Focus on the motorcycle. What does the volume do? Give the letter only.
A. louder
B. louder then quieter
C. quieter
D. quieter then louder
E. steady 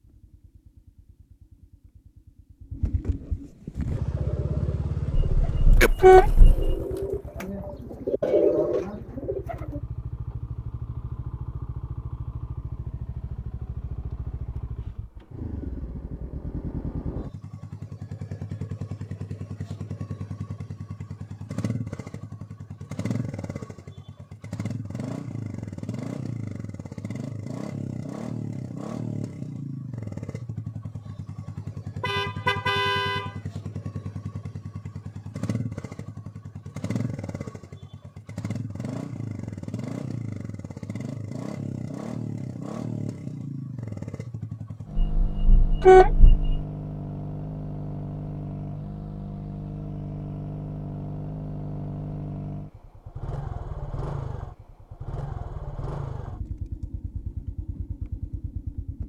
E.